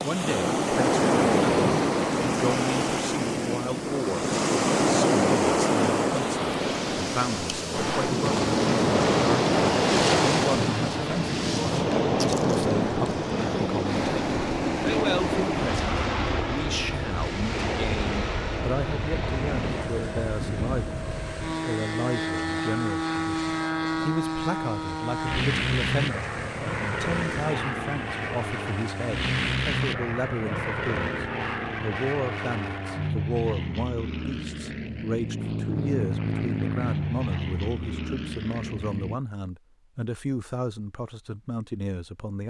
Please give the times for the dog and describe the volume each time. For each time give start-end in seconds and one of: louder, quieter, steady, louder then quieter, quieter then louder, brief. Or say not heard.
not heard.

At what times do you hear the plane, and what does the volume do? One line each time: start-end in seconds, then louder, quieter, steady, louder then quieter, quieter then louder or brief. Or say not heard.
7.7-39.2 steady.